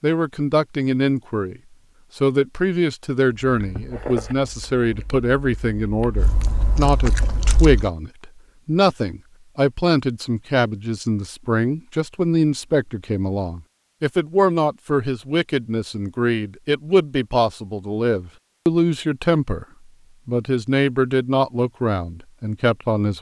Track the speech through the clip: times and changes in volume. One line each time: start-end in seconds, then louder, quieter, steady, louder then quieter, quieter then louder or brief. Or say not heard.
0.0-19.6 steady
20.2-23.1 brief.